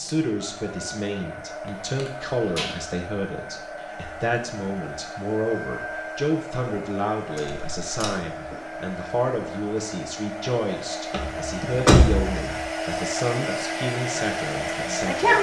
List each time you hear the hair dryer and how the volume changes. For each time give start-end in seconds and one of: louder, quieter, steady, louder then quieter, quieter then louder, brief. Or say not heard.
0.0-15.3 louder.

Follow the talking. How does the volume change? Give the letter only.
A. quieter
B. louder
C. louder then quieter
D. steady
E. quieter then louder
D.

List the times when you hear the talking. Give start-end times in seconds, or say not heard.
0.0-15.3.